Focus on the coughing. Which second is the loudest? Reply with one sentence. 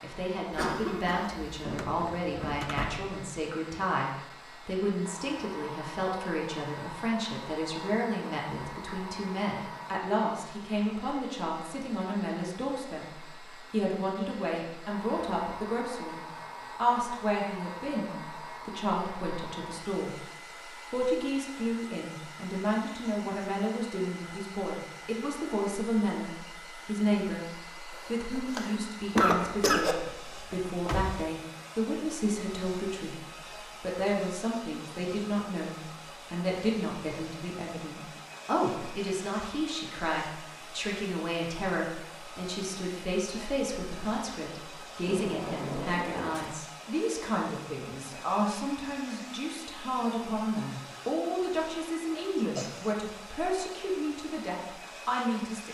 The volume of the coughing peaks at 29 seconds.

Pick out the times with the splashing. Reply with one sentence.
You can't hear the splashing here.